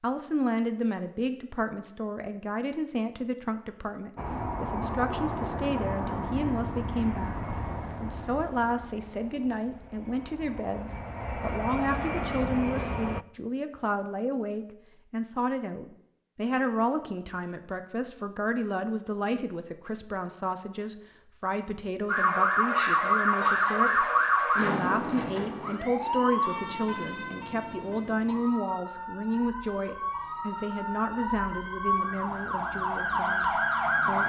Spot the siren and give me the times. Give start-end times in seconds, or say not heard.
22.1-34.2.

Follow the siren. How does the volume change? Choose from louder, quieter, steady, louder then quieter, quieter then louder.
quieter then louder.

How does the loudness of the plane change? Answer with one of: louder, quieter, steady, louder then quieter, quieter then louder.
quieter then louder.